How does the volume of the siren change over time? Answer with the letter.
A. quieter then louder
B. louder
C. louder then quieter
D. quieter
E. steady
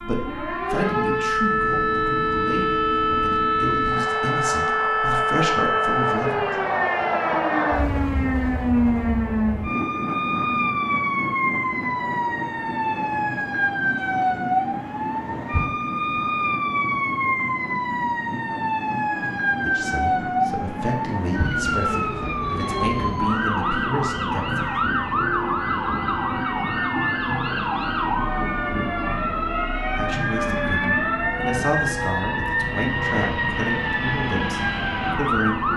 E.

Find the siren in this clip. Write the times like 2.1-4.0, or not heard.
0.0-35.7.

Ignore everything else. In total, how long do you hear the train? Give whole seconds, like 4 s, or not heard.
36 s.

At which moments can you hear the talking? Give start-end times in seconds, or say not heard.
0.0-6.7, 19.6-24.8, 29.9-35.7.